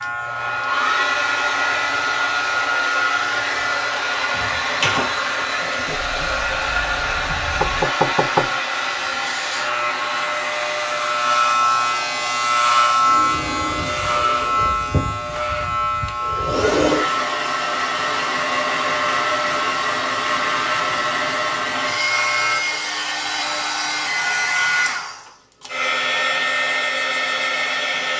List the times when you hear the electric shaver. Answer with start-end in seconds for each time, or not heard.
0.0-23.8.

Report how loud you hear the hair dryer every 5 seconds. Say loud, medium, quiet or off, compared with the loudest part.
loud, loud, medium, loud, loud, loud.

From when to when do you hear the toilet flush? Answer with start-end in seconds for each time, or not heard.
not heard.